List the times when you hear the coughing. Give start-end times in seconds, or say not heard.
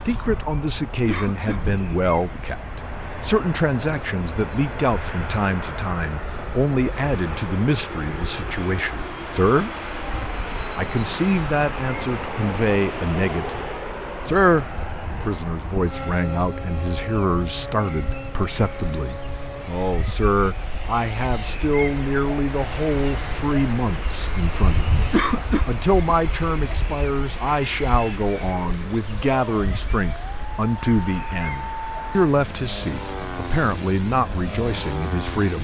1.1-1.7, 25.1-25.6.